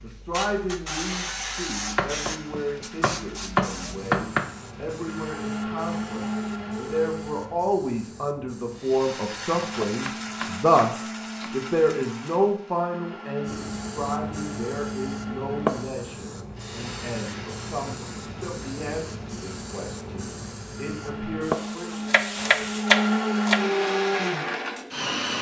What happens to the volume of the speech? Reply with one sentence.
The loudness of the speech goes up, then down.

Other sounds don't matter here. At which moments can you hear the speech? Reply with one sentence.
You can hear the speech from 0.0 to 22.1 s.